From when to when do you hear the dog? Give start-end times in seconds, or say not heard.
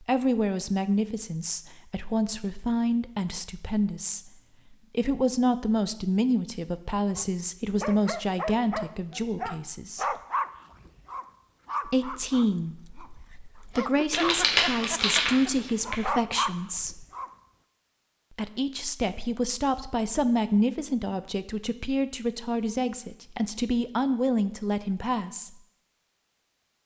7.2-17.3.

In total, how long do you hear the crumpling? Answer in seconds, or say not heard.
2 s.